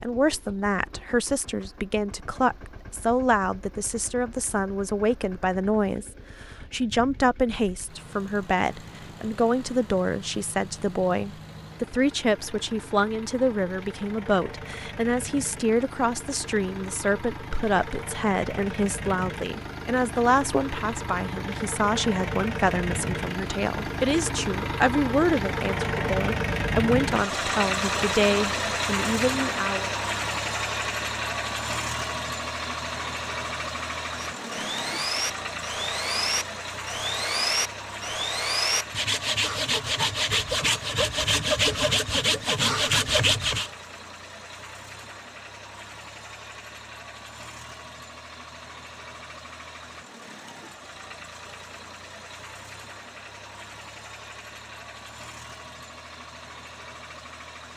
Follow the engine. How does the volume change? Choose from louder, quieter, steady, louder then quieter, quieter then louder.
louder then quieter.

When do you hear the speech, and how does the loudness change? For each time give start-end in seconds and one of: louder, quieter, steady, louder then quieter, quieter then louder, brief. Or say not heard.
0.0-29.9 steady.